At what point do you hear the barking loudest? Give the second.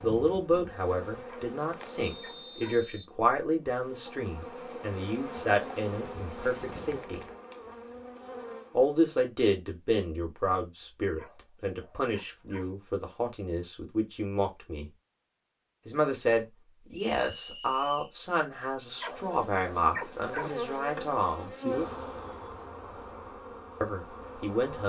20 s.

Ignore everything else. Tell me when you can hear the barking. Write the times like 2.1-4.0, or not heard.
1.2-2.8, 11.2-12.7, 19.0-20.6.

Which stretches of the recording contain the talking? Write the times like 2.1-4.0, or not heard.
0.0-7.2, 8.7-14.9, 15.8-21.5, 23.8-24.8.